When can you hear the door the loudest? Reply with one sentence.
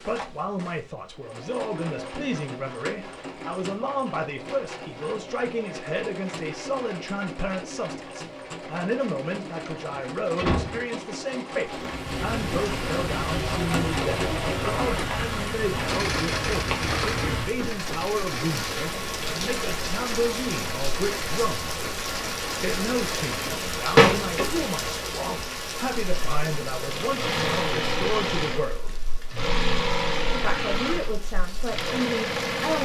The loudest moment of the door is at 24 seconds.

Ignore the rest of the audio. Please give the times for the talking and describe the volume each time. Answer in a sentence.
You can hear the talking from 0.0 to 21.8 s, at a steady volume; from 22.6 to 29.0 s, at a steady volume; and briefly from 30.3 to 32.8 s.